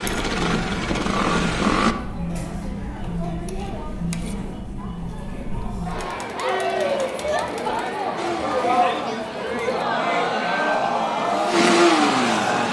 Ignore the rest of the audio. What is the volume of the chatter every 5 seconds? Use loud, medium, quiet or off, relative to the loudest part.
medium, loud, loud.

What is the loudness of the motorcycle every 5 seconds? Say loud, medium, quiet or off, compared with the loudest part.
loud, quiet, loud.